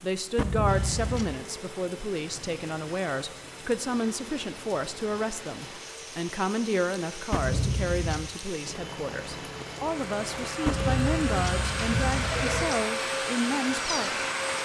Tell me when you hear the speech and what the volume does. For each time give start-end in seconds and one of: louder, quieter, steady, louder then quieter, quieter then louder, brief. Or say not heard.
0.0-14.2 steady.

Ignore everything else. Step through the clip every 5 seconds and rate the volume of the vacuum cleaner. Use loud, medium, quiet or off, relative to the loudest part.
quiet, quiet, loud.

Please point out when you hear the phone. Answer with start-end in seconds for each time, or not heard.
0.3-1.4, 7.3-8.3, 10.7-12.8.